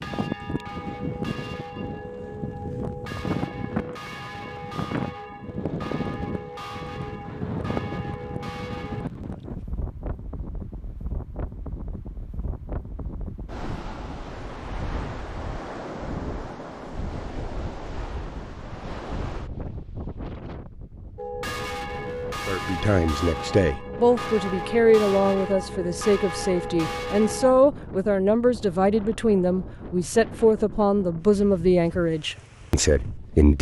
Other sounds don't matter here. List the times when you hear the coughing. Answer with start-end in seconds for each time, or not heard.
not heard.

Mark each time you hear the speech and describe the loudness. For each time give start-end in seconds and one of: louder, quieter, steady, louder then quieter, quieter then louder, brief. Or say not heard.
22.4-33.5 steady.